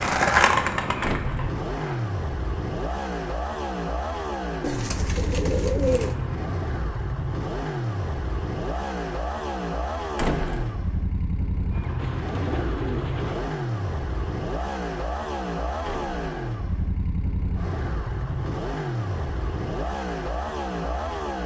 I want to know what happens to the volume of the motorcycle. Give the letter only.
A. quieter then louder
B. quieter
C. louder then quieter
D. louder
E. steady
E.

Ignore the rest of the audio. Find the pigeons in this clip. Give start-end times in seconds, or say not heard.
4.6-6.2, 11.9-13.6.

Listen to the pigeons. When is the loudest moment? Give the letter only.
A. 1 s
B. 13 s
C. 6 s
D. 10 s
C.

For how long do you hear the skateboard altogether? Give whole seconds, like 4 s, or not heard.
2 s.